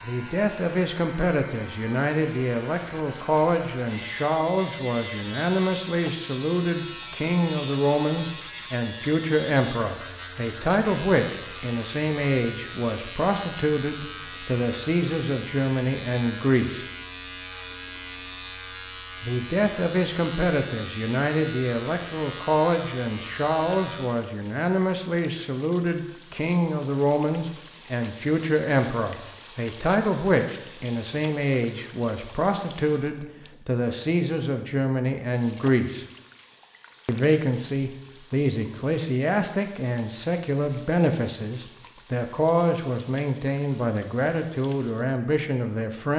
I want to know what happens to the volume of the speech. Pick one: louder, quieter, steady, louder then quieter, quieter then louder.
steady.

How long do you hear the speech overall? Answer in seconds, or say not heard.
43 s.